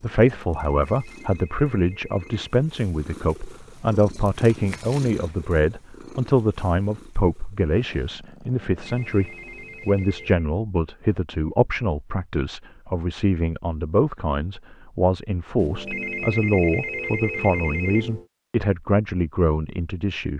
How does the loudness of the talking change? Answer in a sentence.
The volume of the talking stays about the same.